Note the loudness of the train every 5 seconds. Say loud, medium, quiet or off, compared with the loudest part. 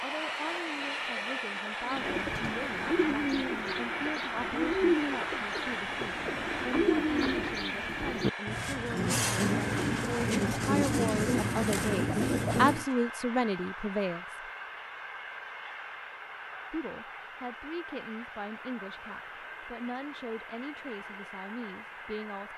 loud, loud, medium, medium, medium.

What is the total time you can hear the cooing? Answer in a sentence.
The cooing can be heard for 11 seconds in total.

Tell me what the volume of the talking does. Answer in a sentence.
The volume of the talking goes up, then down.